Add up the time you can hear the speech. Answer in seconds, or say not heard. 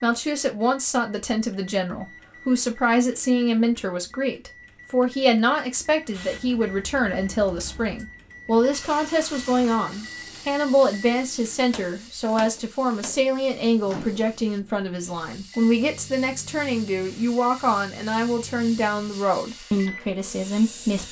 21 s.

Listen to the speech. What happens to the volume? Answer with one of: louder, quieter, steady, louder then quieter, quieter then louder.
steady.